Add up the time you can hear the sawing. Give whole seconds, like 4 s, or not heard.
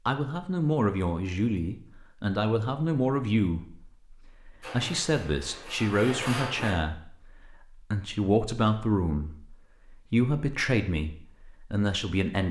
2 s.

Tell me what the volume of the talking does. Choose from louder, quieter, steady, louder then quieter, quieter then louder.
steady.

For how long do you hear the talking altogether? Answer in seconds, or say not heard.
12 s.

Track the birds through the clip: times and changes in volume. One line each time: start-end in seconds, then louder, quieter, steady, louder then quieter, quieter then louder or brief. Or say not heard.
not heard.